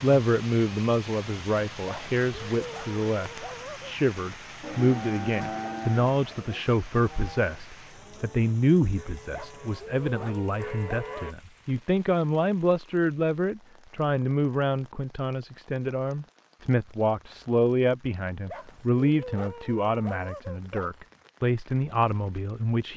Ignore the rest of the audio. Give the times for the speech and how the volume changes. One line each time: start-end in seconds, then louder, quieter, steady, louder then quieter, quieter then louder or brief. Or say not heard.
0.0-22.9 steady.